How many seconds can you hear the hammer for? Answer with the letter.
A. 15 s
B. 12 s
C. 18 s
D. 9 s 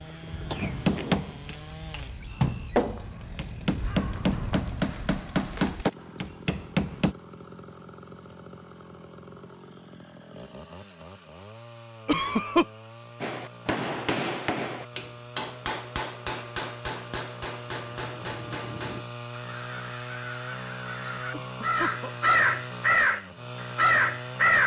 B.